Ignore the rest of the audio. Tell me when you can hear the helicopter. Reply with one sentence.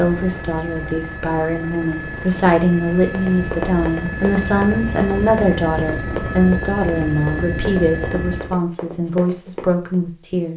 You can hear the helicopter from 0.0 to 8.6 s.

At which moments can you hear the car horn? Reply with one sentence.
The car horn can't be heard in this clip.